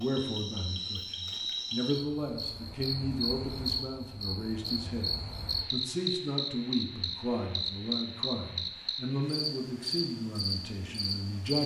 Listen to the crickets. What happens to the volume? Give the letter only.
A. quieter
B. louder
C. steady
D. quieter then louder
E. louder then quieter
C.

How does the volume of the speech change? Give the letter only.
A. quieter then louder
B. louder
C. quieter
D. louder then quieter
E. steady
E.